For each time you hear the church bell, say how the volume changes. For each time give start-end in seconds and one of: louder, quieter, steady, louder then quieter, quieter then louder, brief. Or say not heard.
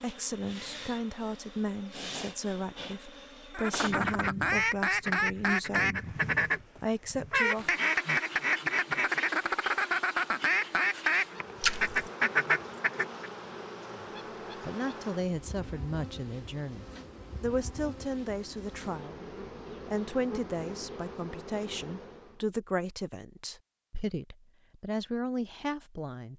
not heard.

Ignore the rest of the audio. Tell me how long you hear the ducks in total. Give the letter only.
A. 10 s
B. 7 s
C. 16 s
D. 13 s
A.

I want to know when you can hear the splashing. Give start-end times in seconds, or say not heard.
11.6-12.1.